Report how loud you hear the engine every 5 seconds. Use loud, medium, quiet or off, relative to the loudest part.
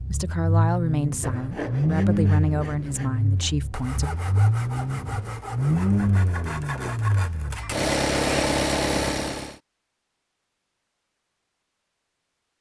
loud, loud, off.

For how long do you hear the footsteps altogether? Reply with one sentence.
You can't hear the footsteps here.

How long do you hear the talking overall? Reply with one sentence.
You can hear the talking for 4 seconds altogether.